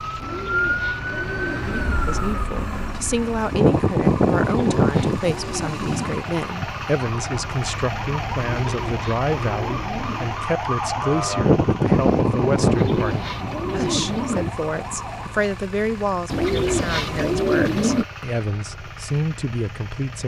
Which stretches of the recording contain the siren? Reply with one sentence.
The siren can be heard from 0.0 to 15.6 s.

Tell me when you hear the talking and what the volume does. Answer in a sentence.
You can hear the talking from 2.0 to 20.2 s, at a steady volume.